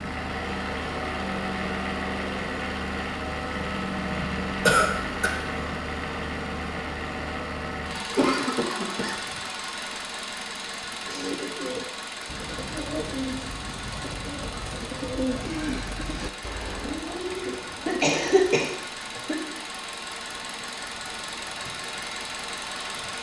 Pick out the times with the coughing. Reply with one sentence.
The coughing can be heard from 4.2 to 5.3 s, from 8.1 to 9.2 s and from 17.4 to 19.4 s.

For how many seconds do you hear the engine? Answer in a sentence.
The engine can be heard for 23 seconds in total.